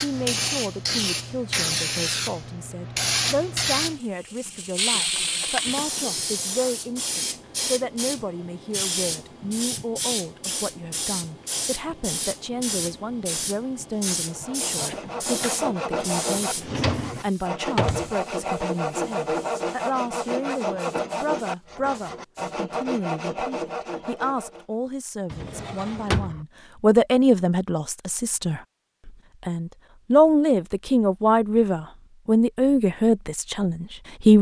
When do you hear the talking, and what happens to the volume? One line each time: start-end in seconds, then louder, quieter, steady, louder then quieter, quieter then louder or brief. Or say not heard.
0.0-34.3 louder.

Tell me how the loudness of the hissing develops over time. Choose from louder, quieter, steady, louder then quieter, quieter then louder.
quieter.